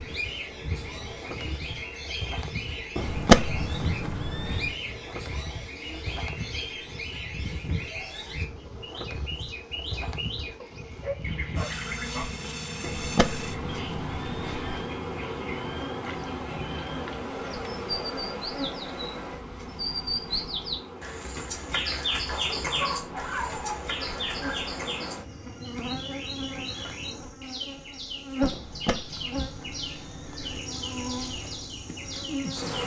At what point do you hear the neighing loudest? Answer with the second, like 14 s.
3 s.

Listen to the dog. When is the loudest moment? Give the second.
23 s.